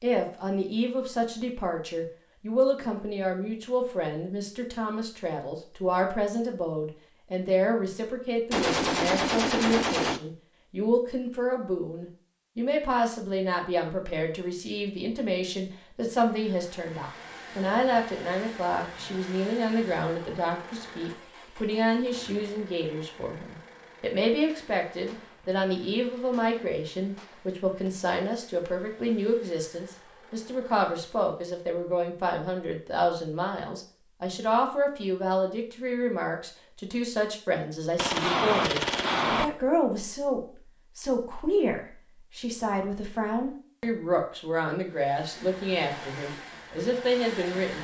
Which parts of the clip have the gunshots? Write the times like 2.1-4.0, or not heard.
8.5-10.2, 24.4-27.9, 38.0-39.5.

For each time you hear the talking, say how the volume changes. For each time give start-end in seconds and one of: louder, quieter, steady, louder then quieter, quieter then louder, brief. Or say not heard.
0.0-47.7 steady.